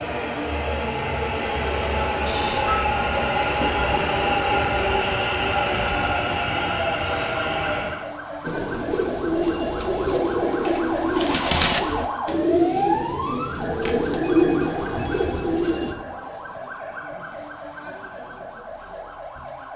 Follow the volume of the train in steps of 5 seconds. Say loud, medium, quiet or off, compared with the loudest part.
loud, loud, off, off.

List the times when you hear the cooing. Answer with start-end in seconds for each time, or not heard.
8.4-15.9.